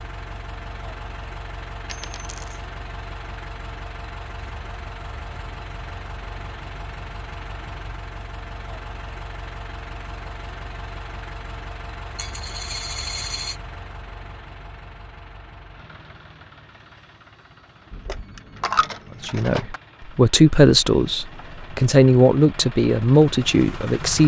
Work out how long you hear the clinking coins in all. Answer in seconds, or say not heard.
4 s.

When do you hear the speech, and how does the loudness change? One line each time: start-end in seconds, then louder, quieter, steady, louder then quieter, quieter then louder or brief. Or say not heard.
19.2-24.2 steady.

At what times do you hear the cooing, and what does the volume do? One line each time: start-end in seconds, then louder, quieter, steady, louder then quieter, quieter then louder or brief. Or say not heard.
not heard.